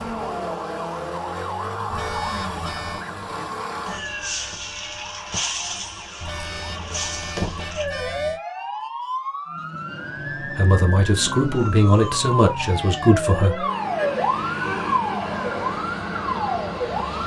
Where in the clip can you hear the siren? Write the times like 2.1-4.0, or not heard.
0.0-17.2.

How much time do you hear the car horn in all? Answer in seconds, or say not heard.
4 s.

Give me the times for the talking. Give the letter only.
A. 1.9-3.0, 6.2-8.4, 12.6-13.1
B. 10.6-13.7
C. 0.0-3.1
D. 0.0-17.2
B.